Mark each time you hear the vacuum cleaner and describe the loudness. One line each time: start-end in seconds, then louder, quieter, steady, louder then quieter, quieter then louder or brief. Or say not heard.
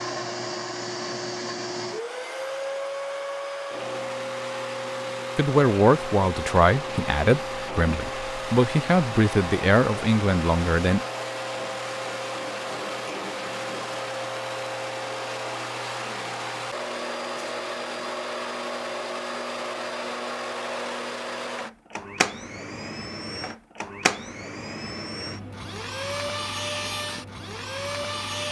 0.0-28.4 steady.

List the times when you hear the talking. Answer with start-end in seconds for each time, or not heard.
5.3-11.1.